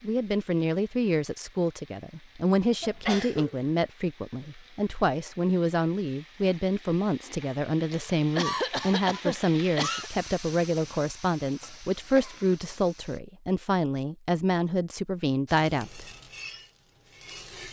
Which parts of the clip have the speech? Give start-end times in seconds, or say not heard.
0.0-16.1.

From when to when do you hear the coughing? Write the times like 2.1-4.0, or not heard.
2.8-3.5, 7.9-10.1, 12.2-12.6.